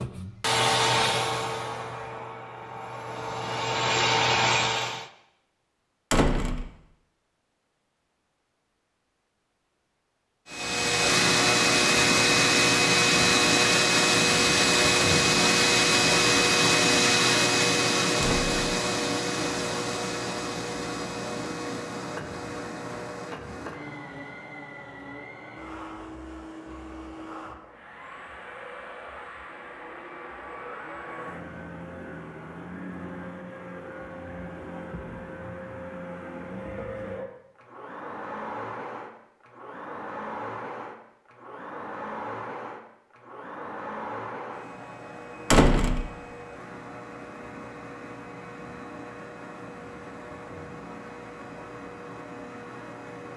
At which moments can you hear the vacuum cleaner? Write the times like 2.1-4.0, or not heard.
0.0-5.0, 10.5-53.3.